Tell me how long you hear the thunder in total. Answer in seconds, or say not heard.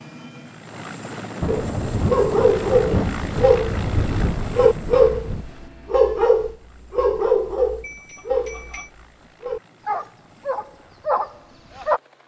4 s.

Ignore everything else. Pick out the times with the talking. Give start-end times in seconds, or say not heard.
not heard.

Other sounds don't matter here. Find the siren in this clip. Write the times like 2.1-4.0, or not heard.
not heard.